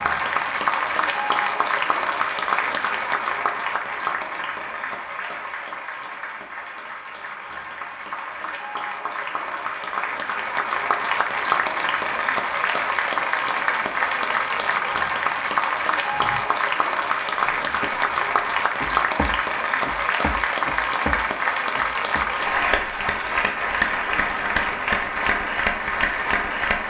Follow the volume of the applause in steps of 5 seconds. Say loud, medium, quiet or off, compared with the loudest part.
loud, medium, loud, loud, loud, loud.